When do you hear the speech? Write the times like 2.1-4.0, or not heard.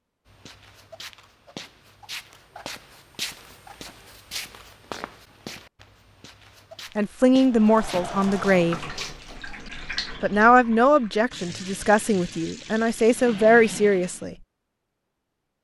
7.0-8.8, 10.2-14.3.